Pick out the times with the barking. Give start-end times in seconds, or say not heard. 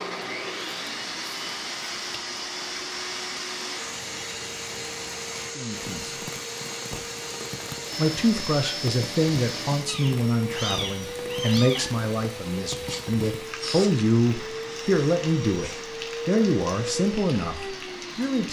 not heard.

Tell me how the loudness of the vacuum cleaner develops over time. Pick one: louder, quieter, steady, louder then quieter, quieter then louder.
steady.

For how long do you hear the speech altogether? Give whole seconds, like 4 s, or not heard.
11 s.